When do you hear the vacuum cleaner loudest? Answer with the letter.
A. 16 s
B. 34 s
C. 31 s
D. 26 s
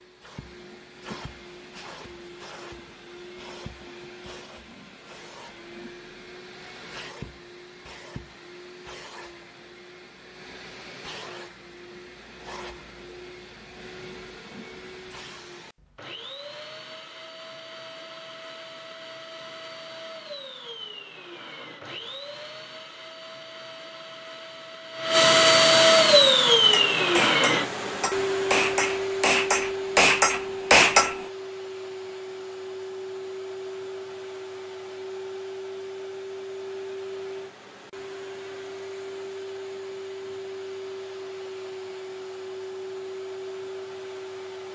D.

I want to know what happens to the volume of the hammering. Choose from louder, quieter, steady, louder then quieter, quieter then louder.
louder.